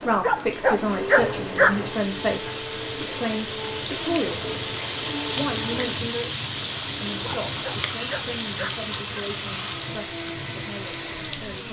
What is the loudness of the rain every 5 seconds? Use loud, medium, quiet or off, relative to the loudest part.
loud, loud, medium.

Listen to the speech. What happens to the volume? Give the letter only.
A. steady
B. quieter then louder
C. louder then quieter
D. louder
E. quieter
E.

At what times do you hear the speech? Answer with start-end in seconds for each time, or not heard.
0.0-4.7, 5.3-11.6.